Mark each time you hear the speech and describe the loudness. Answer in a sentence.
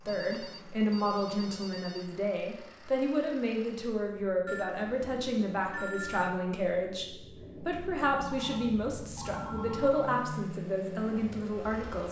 The speech can be heard from 0.1 to 12.0 s, at a steady volume.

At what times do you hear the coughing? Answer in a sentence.
The coughing can't be heard in this clip.